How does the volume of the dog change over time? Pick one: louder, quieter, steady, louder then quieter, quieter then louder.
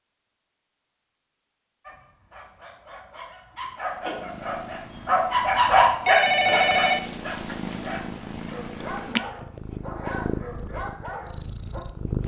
louder then quieter.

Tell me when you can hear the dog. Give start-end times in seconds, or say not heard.
1.9-11.8.